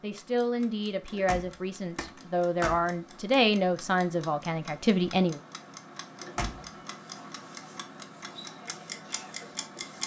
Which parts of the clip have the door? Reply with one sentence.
The door can be heard from 1.1 to 2.9 s and from 6.2 to 6.7 s.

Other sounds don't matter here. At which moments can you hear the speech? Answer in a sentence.
You can hear the speech from 0.0 to 5.4 s.